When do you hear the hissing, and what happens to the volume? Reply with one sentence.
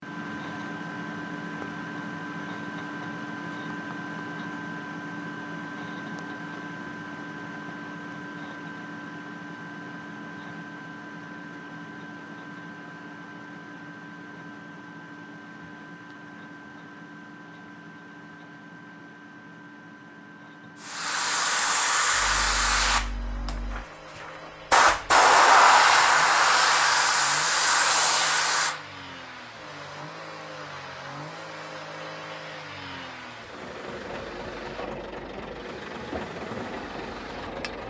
The hissing can be heard from 20.8 to 37.6 s, getting louder then quieter.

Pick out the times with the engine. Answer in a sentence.
You can hear the engine from 0.0 to 37.8 s.